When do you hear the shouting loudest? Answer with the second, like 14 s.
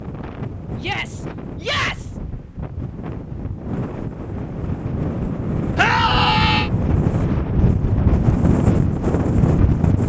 6 s.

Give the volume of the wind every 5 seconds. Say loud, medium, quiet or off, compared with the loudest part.
medium, loud.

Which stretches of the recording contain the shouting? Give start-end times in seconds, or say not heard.
0.8-2.1, 5.8-6.7.